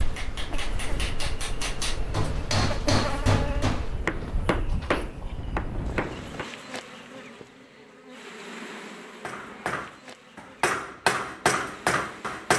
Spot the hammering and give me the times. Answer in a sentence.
The hammering can be heard from 0.0 to 6.5 s and from 9.2 to 12.5 s.